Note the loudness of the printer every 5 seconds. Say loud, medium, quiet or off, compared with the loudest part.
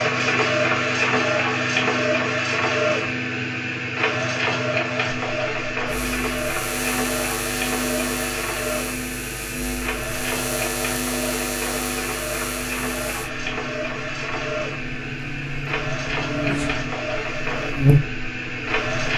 loud, medium, medium, medium.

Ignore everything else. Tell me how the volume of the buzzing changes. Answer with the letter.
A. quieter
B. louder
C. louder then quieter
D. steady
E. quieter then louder
E.